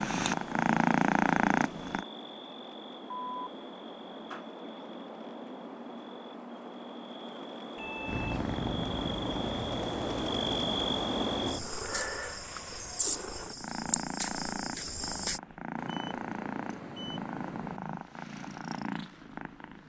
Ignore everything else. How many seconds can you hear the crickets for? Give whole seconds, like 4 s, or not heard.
15 s.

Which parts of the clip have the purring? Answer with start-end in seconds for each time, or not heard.
0.0-2.0, 8.1-19.8.